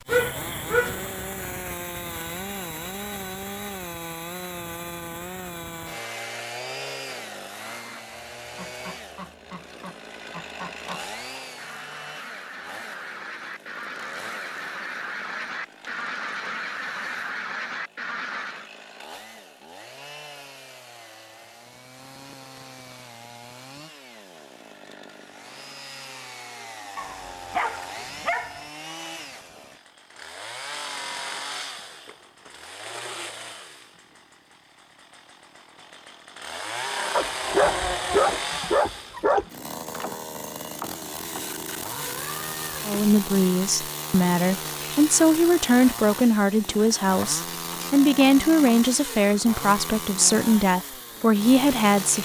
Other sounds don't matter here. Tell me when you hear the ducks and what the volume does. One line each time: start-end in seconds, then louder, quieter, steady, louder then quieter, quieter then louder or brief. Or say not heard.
7.5-18.7 louder.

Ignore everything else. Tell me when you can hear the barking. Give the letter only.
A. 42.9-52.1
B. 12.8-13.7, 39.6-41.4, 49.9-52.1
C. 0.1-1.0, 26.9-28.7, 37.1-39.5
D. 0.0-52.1
C.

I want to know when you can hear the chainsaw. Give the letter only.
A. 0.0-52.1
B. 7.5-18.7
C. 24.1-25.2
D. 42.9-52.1
A.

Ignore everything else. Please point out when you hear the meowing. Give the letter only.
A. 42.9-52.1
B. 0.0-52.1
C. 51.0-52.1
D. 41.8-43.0
D.